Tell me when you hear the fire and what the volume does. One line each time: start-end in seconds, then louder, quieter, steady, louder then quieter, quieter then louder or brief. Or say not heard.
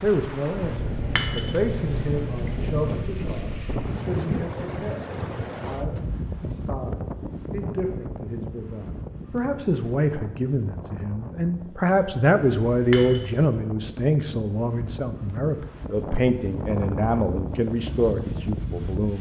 not heard.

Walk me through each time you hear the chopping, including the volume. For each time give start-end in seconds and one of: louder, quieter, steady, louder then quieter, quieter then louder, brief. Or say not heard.
not heard.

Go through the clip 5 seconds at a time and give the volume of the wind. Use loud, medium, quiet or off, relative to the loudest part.
loud, loud, medium, loud.